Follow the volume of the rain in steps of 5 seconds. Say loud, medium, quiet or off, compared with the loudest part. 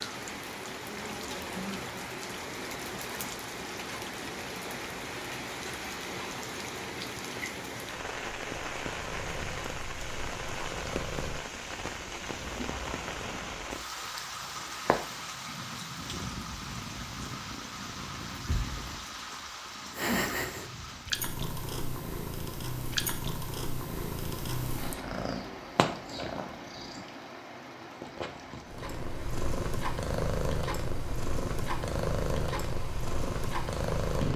loud, loud, loud, loud, loud, medium, medium.